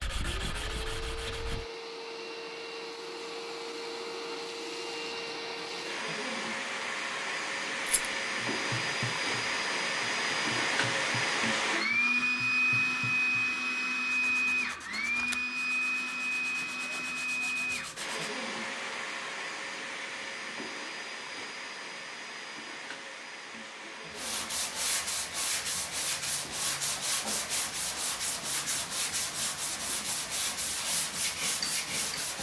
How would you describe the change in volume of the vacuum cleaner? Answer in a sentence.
The volume of the vacuum cleaner goes up, then down.